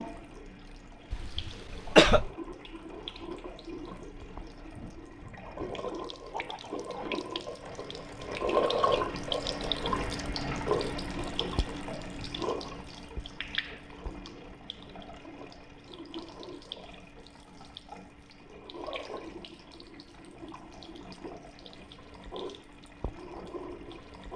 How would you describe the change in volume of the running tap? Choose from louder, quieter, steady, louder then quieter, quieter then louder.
louder then quieter.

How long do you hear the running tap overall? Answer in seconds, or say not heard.
24 s.